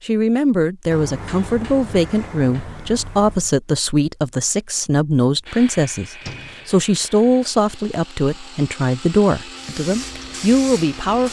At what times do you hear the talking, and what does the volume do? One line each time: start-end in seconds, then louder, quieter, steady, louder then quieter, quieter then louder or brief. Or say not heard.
0.0-11.2 steady.